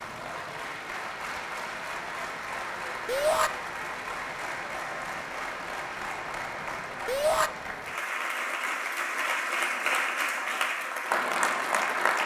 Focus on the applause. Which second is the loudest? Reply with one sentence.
The volume of the applause peaks at 12 seconds.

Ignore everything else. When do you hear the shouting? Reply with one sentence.
The shouting can be heard from 3.0 to 3.5 s and from 7.0 to 7.5 s.